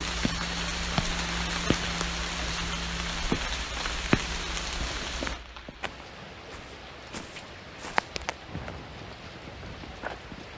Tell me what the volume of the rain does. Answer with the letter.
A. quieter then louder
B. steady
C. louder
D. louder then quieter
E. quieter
E.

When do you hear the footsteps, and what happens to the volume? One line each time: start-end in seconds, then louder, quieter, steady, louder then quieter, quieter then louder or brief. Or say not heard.
5.2-10.5 louder then quieter.